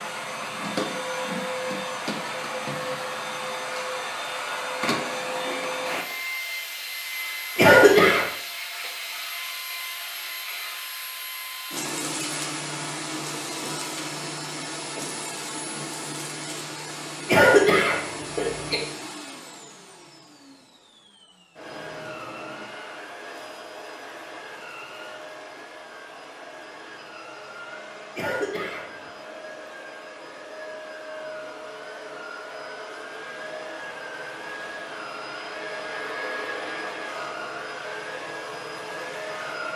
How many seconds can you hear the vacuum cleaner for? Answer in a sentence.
You can hear the vacuum cleaner for 40 seconds altogether.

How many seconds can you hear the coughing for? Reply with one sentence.
The coughing can be heard for 3 seconds in total.